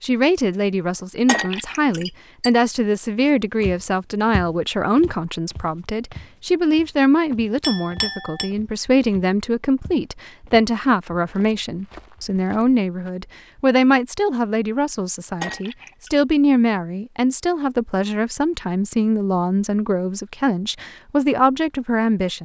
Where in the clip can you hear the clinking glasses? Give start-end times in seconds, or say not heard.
1.2-2.5, 7.6-8.5, 15.4-16.2.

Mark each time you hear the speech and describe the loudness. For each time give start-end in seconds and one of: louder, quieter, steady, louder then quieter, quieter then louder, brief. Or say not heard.
0.0-22.4 steady.